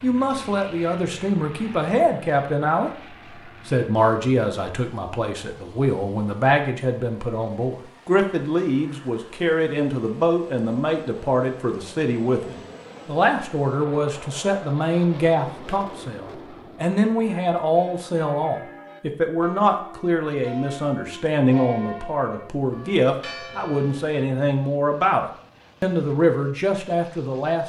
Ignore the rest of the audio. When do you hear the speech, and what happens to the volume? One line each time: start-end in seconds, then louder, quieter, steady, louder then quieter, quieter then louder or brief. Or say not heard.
0.0-2.9 brief
3.6-27.6 steady.